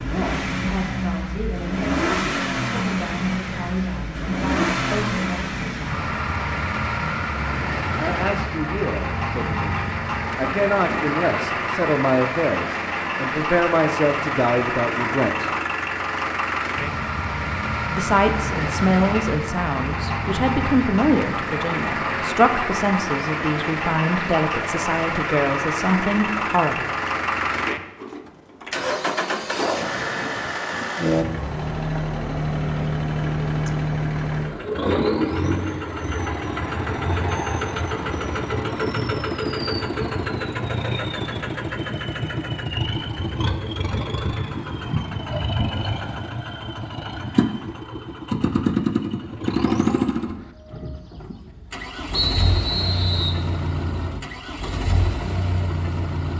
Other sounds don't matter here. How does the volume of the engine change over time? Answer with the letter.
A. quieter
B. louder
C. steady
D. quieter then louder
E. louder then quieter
C.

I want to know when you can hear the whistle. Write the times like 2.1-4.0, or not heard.
52.1-53.5.